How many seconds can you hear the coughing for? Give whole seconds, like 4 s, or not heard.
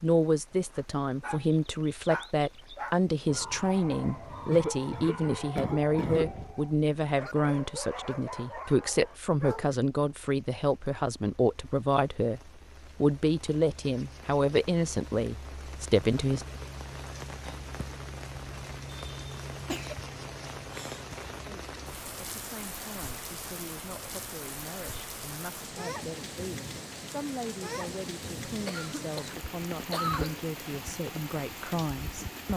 5 s.